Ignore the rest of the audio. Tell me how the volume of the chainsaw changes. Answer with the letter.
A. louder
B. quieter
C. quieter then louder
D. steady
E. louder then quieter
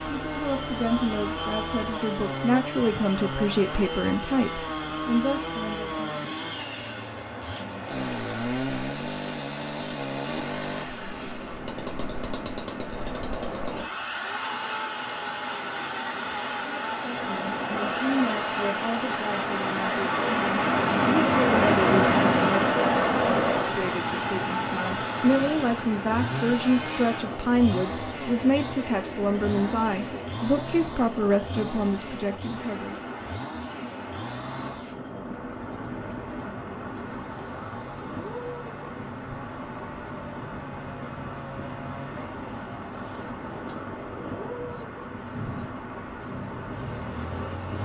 B.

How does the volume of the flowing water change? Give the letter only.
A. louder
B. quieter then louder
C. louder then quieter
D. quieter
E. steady
C.